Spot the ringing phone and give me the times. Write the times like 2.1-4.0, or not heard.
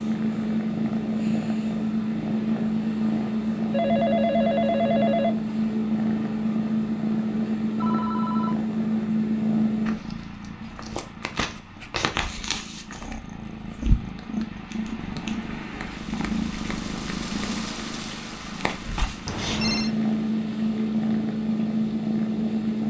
3.7-5.4, 7.8-8.6, 19.2-19.9.